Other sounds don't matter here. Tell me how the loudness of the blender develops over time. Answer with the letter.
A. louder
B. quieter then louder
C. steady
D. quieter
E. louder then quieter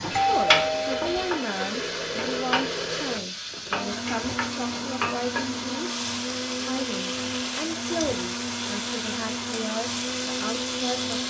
C.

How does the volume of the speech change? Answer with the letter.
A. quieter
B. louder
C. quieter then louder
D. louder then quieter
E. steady
E.